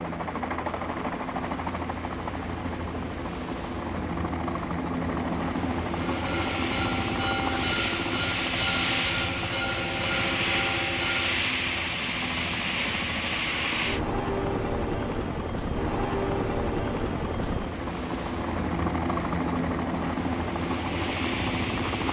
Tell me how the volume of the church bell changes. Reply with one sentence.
The volume of the church bell stays about the same.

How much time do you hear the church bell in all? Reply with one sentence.
The church bell can be heard for 5 seconds in total.